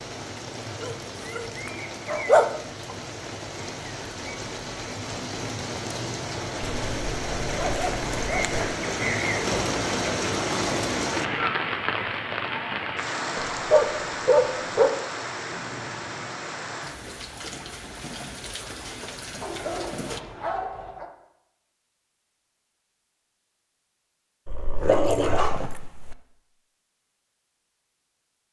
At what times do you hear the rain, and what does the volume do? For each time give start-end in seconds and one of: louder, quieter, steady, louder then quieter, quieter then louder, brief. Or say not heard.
0.0-20.2 louder then quieter.